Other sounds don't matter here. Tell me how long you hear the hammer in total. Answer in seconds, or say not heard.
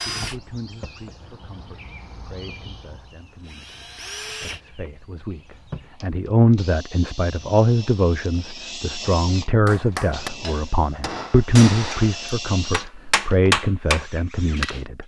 5 s.